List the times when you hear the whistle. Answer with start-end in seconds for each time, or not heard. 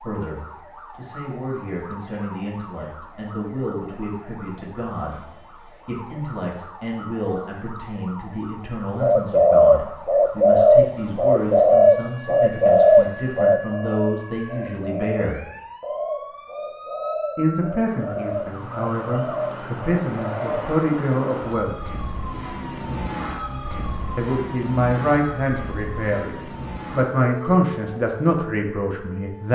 not heard.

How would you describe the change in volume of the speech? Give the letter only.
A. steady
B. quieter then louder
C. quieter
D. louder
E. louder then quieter
D.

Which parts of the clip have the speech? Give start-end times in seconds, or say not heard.
0.0-15.4, 17.4-21.8, 24.1-29.5.